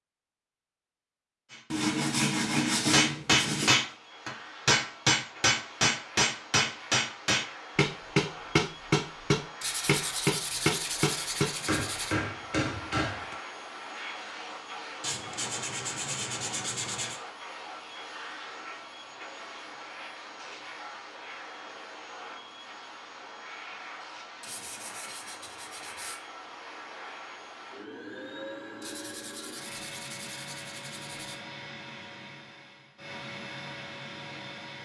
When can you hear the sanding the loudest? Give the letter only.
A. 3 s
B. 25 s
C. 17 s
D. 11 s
A.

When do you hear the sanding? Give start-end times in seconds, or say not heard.
1.7-3.7, 9.6-12.2, 15.0-17.2, 24.4-26.2, 28.8-31.4.